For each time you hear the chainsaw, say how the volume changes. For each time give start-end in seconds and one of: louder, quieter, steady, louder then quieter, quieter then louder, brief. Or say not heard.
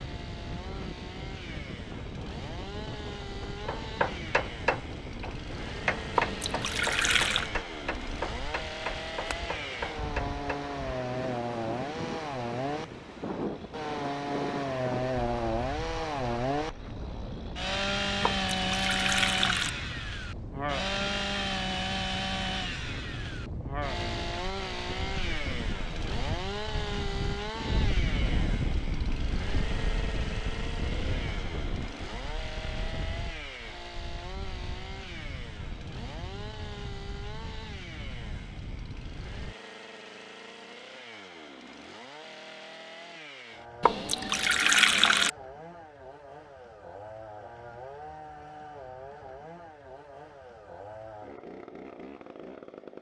0.0-52.9 louder then quieter.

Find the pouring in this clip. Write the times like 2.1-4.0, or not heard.
6.2-7.5, 18.2-19.7, 43.8-45.3.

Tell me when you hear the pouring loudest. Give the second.
45 s.